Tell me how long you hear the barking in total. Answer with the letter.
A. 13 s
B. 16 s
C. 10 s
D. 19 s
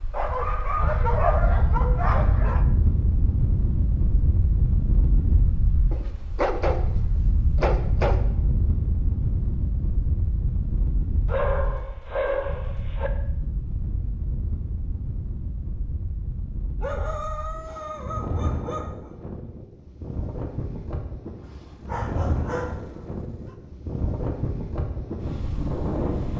C.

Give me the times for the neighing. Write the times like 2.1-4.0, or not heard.
not heard.